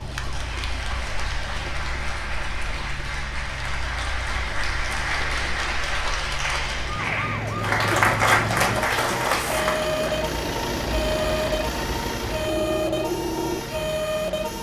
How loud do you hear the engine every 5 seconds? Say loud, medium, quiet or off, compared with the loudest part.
quiet, medium, loud.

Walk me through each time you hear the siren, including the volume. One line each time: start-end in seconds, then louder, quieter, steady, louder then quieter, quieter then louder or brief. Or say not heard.
0.0-14.5 louder.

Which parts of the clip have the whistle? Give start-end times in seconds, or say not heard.
not heard.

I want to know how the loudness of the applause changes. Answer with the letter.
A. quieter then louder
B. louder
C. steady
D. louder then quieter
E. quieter
B.